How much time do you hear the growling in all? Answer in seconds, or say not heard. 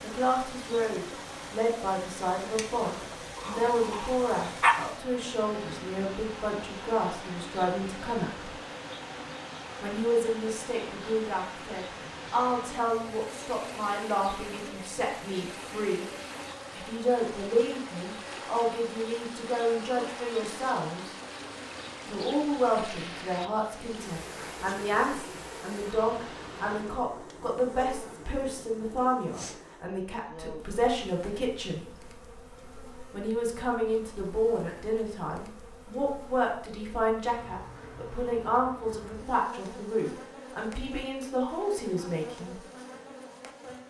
2 s.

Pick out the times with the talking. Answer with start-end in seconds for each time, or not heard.
0.0-8.5, 9.8-16.1, 16.7-21.1, 22.1-31.9, 33.1-42.6.